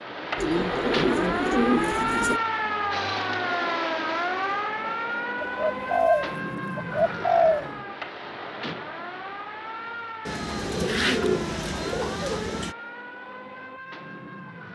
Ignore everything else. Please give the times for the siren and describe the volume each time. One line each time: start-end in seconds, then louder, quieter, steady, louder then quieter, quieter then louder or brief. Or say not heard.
0.0-14.7 quieter.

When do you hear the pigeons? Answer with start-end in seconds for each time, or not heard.
0.3-2.4, 5.4-7.7, 10.2-12.8.